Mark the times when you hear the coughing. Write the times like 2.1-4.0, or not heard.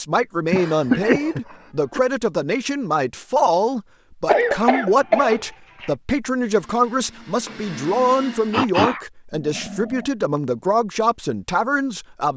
0.5-2.0, 4.2-5.9, 8.5-10.1.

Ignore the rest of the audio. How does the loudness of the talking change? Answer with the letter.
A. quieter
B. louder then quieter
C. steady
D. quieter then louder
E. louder
C.